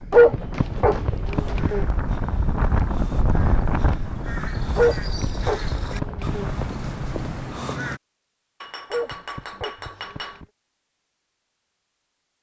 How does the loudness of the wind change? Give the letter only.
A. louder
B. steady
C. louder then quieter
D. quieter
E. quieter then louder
C.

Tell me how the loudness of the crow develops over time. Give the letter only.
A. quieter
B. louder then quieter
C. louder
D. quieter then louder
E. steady
C.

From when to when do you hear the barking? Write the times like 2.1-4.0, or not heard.
0.1-1.9, 4.8-6.5, 8.9-10.4.